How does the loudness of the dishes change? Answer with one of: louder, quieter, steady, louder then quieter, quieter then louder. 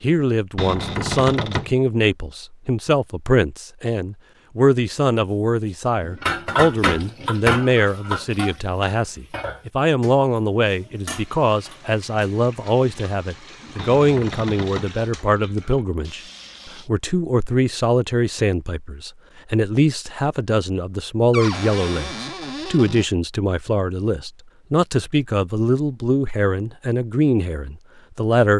quieter.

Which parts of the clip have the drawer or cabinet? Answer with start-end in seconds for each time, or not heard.
0.6-1.8, 13.8-14.9, 21.3-23.1.